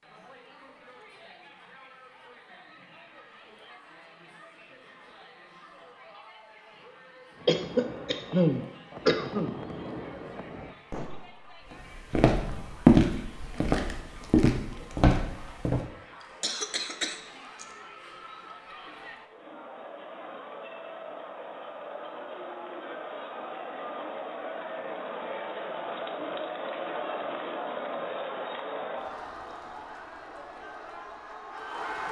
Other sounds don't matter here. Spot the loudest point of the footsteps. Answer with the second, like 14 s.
13 s.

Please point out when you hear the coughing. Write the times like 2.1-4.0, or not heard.
7.5-9.6, 16.2-17.6.